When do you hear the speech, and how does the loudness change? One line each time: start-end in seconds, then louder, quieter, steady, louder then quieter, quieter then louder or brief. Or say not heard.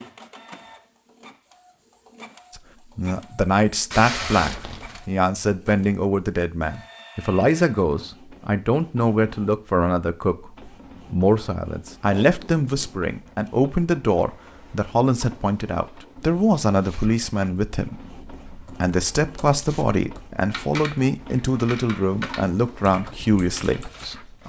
2.5-24.4 steady.